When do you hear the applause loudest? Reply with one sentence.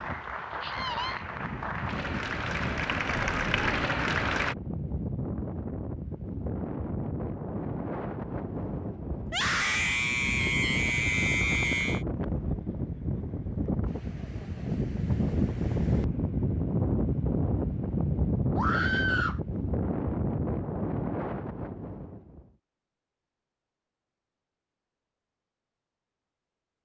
The loudest moment of the applause is at 4 seconds.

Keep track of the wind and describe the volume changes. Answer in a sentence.
The volume of the wind goes up.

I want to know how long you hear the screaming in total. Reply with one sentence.
The screaming can be heard for 4 seconds in total.